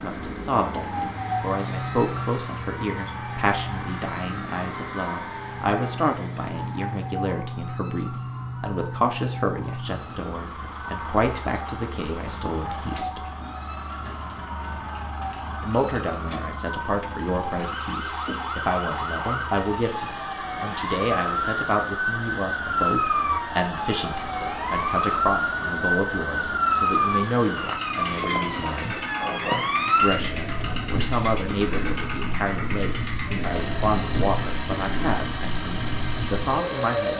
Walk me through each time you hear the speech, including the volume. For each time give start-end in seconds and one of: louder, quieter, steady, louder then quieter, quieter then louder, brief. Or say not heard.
0.0-13.2 steady
15.6-29.0 steady
29.9-37.1 steady.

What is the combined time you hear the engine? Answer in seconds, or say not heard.
37 s.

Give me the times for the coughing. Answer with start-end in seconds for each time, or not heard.
not heard.